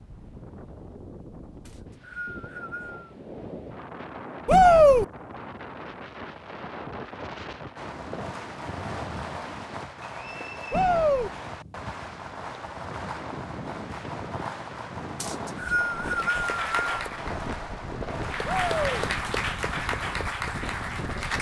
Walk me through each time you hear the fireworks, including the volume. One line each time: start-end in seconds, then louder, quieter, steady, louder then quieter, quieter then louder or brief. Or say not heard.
7.8-19.1 steady.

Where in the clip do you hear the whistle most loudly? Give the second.
16 s.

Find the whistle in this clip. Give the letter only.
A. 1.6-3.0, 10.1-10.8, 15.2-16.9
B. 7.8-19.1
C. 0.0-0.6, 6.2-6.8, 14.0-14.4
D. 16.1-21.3
A.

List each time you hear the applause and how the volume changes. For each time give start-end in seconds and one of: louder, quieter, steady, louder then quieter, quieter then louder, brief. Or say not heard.
16.1-21.3 quieter then louder.